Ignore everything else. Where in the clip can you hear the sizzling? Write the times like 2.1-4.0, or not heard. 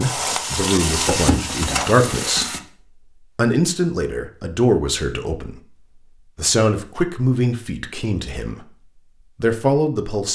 0.0-2.6.